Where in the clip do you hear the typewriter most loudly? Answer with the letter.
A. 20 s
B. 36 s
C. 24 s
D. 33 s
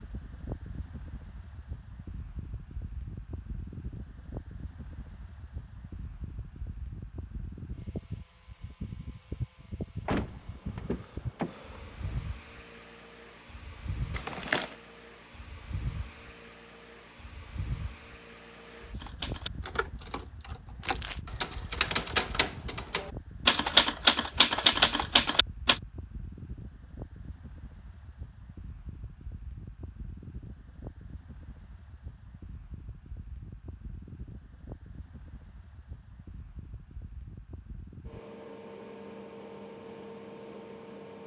C.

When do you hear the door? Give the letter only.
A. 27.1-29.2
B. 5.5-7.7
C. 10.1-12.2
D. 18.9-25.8
C.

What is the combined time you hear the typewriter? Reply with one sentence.
You can hear the typewriter for 7 seconds altogether.